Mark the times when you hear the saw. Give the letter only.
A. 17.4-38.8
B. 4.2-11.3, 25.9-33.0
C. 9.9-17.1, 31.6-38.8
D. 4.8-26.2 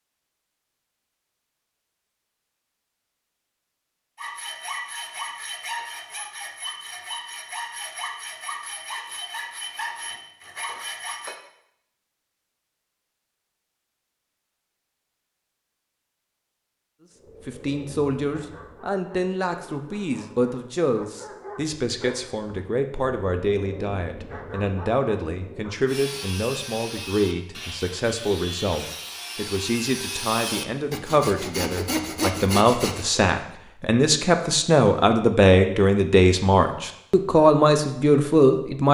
B.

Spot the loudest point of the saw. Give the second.
32 s.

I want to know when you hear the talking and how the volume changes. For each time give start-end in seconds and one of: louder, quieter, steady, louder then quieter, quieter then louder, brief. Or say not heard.
17.4-38.8 louder.